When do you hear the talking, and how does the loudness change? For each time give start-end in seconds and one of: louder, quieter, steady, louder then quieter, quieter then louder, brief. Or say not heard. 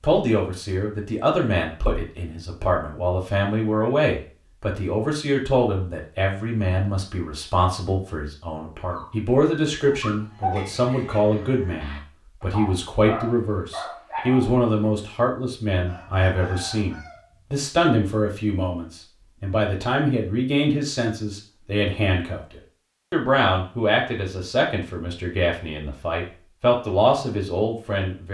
0.0-28.2 steady.